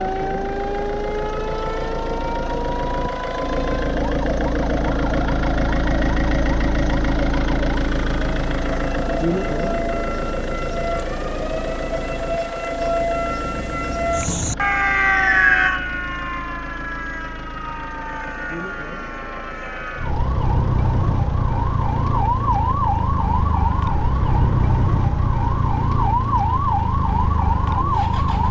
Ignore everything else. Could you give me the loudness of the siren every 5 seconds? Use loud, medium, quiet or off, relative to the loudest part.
medium, medium, loud, loud, loud, loud.